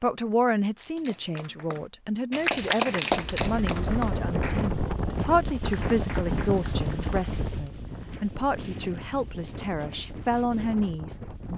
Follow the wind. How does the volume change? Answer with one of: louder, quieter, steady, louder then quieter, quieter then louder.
quieter.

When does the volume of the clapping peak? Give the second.
3 s.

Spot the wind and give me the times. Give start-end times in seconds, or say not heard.
3.1-11.5.